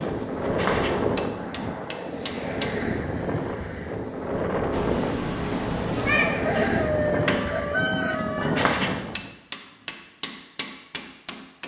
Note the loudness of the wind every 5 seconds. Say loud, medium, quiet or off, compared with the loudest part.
loud, loud, off.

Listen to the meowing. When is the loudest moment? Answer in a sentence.
The loudest moment of the meowing is at 6 seconds.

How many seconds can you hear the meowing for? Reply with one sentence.
You can hear the meowing for 2 seconds altogether.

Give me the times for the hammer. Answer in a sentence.
You can hear the hammer from 0.0 to 2.8 s and from 6.5 to 11.6 s.